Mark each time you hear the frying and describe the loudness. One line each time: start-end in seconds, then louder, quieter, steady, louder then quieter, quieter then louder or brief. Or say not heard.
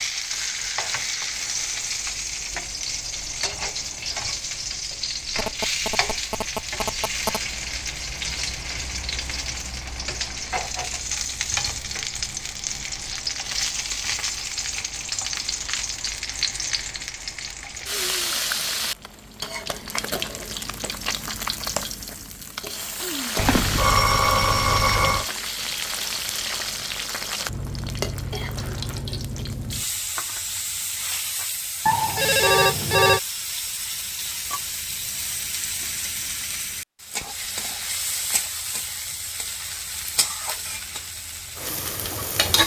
0.0-42.6 steady.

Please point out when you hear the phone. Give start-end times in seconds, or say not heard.
5.3-7.4, 23.4-25.2, 31.9-33.2.